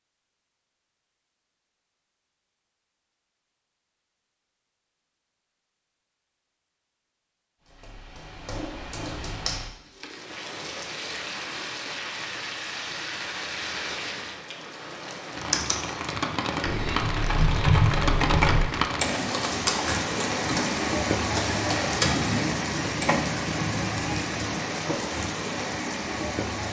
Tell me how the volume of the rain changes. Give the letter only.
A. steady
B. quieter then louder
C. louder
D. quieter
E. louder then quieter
C.